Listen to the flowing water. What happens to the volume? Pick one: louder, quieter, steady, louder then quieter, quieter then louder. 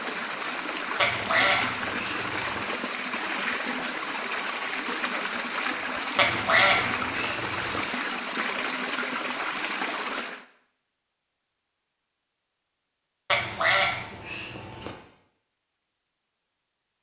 steady.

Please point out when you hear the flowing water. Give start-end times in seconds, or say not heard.
0.0-10.4.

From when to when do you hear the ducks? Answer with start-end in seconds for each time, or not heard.
0.9-2.6, 6.2-7.8, 13.3-14.9.